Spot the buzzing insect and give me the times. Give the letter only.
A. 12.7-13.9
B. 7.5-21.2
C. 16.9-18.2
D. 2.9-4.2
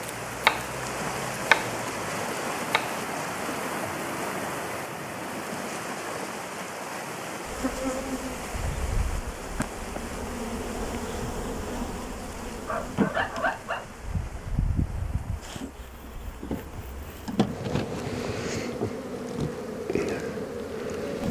B.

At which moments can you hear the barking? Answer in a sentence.
The barking can be heard from 12.7 to 13.9 s.